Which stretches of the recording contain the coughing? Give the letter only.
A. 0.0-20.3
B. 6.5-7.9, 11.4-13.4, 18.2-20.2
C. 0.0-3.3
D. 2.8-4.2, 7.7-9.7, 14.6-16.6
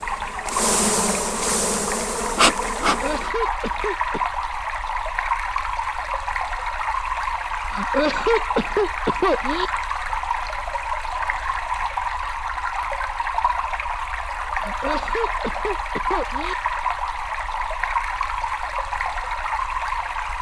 D.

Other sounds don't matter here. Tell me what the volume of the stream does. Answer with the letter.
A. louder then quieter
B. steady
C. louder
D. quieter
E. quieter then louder
B.